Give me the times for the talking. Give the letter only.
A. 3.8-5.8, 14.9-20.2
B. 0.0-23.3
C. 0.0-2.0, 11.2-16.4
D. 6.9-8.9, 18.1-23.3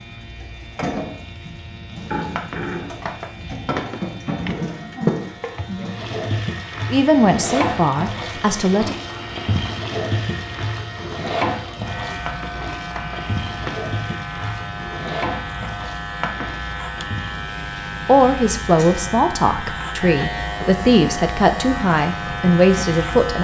D.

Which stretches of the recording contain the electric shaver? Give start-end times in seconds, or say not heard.
0.0-23.3.